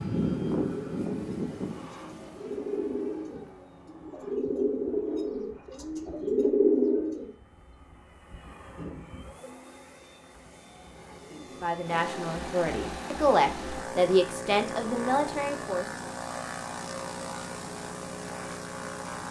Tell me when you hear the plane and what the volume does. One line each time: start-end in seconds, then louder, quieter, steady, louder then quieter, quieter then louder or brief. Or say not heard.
0.0-19.2 quieter then louder.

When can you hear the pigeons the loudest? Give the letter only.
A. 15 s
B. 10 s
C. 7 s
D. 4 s
C.